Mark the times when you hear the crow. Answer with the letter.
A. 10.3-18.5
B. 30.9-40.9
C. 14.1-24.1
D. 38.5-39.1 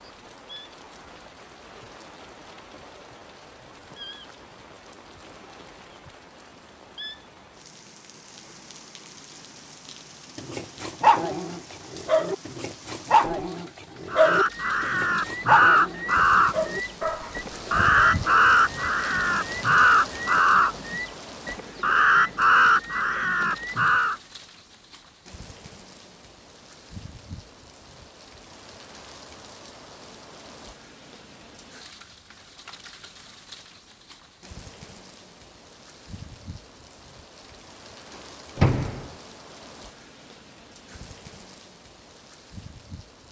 C.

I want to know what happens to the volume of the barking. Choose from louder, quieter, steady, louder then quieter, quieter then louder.
quieter.